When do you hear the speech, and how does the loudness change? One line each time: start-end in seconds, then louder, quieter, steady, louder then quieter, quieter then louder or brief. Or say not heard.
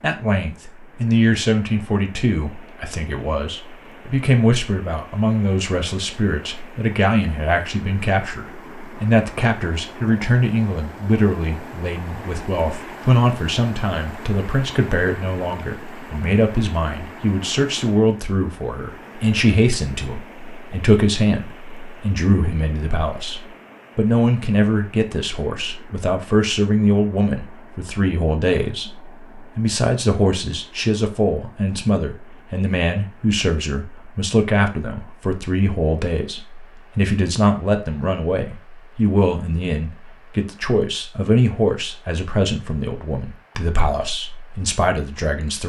0.0-45.6 steady.